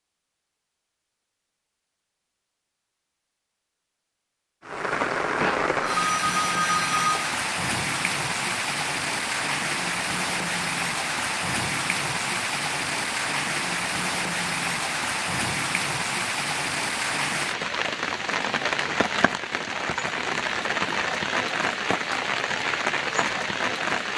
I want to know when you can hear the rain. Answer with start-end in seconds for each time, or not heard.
4.7-24.1.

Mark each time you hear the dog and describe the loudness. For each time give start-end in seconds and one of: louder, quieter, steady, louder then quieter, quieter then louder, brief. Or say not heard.
not heard.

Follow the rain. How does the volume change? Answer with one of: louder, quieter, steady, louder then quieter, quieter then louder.
steady.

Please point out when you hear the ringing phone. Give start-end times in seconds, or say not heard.
5.3-7.3.